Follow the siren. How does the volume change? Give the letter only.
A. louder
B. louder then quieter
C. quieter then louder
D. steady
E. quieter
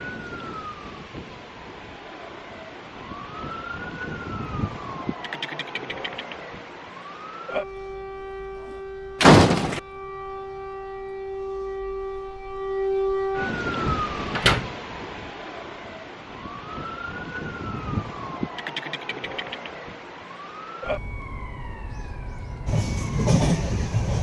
B.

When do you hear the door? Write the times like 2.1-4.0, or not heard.
9.2-9.8, 13.8-14.7.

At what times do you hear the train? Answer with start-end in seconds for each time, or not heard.
22.6-24.1.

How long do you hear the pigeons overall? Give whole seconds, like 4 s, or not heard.
not heard.